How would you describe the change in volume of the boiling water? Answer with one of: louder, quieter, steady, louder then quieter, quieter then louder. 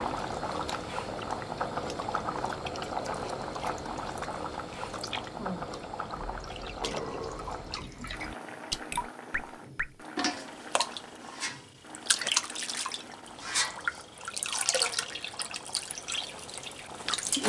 quieter.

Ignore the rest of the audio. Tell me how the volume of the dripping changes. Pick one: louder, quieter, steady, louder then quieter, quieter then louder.
louder.